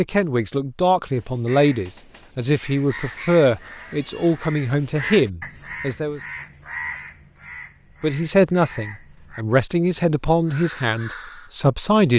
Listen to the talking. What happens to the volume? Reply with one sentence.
The volume of the talking stays about the same.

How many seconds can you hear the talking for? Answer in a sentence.
You can hear the talking for 10 seconds altogether.